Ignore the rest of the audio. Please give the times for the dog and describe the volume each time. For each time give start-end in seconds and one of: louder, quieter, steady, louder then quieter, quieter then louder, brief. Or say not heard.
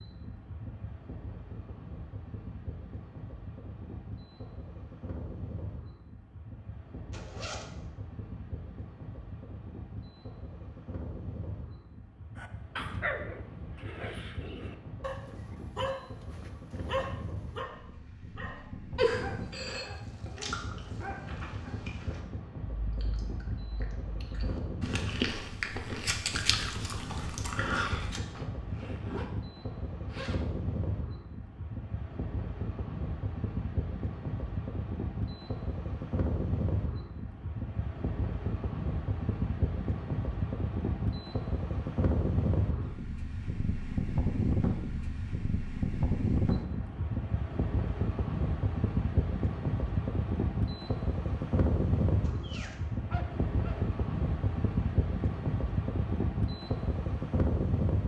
12.3-21.8 quieter
52.4-53.8 brief.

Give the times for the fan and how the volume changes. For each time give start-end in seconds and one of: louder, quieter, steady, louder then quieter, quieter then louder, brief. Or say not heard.
0.0-58.0 louder.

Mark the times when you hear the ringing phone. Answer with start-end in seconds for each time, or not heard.
18.9-19.9.